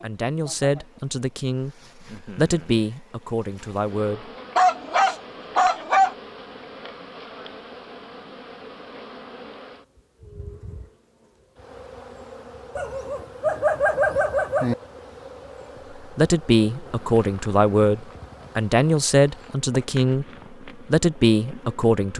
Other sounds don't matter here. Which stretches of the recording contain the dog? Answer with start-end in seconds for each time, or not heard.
4.5-6.2, 12.8-14.8.